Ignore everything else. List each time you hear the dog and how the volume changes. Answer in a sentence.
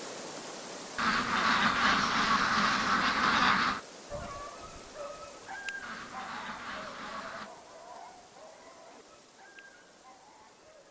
The dog can be heard from 4.1 to 10.8 s, getting quieter.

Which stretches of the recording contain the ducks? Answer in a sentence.
The ducks can be heard from 0.9 to 3.8 s and from 5.8 to 7.5 s.